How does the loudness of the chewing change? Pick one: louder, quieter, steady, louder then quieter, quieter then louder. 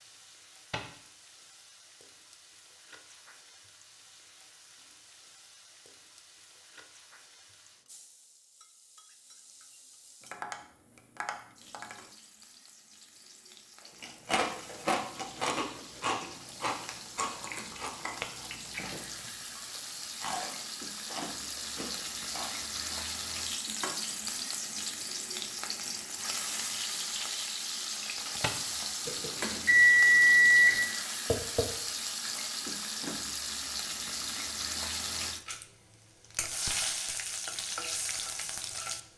quieter.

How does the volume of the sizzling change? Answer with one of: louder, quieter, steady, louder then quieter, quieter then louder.
louder.